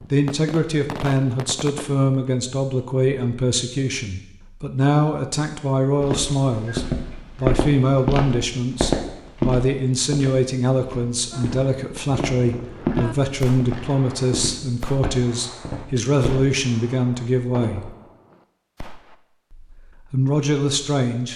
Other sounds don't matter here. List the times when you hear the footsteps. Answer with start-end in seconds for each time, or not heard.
6.0-16.4.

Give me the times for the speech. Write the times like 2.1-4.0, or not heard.
0.1-17.9, 19.5-21.3.